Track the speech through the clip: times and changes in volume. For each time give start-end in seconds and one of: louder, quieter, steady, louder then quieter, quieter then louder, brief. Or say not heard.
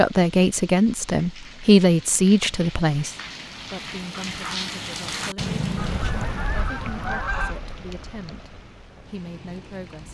0.0-10.0 quieter.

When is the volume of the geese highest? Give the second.
7 s.